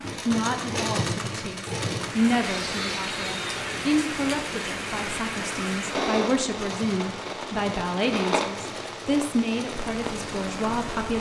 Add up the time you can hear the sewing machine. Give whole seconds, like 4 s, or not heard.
11 s.